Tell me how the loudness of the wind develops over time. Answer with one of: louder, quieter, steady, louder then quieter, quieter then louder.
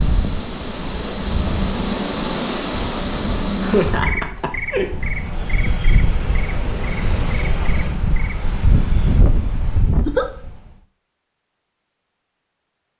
louder.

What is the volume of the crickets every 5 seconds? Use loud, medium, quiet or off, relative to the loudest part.
loud, medium, off.